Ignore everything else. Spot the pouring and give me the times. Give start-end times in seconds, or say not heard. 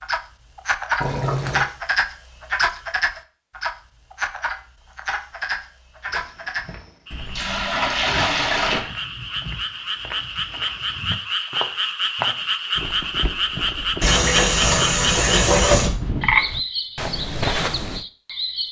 1.0-1.6, 7.1-8.8, 14.0-15.9.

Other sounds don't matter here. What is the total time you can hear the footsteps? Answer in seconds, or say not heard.
12 s.